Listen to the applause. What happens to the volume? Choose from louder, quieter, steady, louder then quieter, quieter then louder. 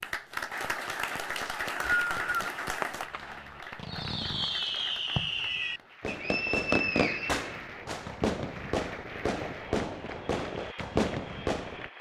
quieter.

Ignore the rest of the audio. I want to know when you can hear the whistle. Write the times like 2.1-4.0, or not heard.
1.4-2.5, 6.0-7.4.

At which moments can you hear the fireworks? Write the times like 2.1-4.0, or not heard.
2.8-11.9.